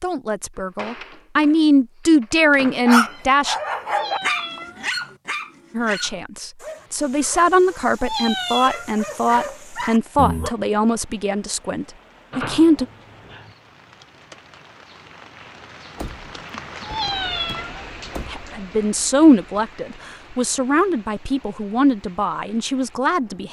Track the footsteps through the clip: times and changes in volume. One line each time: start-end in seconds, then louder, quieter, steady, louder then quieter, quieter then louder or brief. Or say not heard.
not heard.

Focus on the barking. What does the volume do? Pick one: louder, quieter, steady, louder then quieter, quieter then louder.
quieter then louder.